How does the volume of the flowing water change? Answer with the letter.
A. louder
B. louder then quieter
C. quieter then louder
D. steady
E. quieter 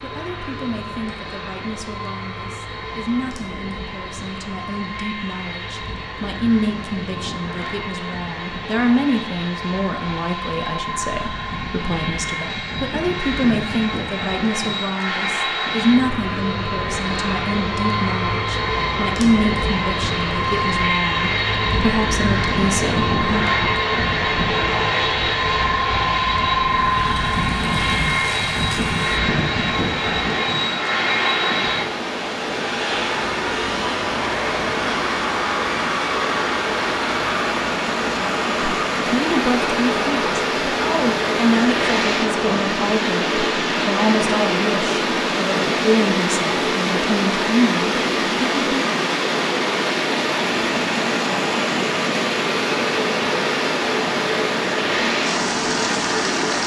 A.